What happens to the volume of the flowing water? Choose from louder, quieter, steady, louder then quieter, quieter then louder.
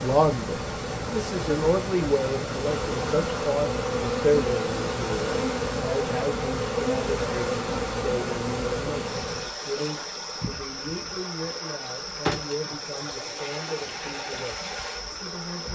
steady.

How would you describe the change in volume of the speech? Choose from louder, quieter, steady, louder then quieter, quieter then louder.
quieter.